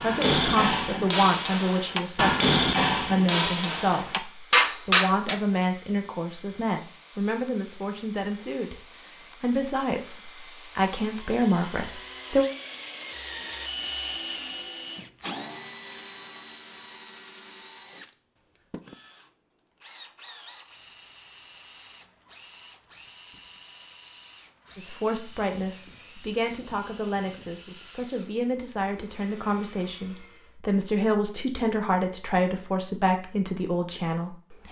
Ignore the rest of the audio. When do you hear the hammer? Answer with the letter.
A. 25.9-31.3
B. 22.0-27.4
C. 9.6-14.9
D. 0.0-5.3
D.